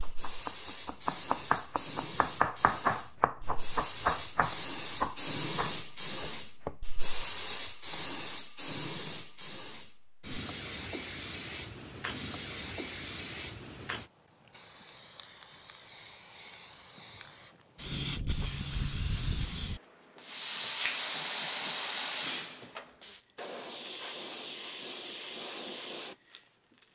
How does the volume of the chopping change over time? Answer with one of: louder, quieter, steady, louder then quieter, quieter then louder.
quieter.